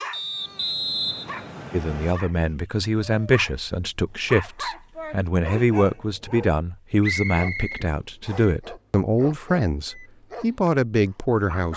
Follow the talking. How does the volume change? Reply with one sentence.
The volume of the talking stays about the same.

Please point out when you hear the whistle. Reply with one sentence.
You can hear the whistle from 0.1 to 2.1 s and from 7.0 to 8.4 s.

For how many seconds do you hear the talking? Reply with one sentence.
The talking can be heard for 10 seconds in total.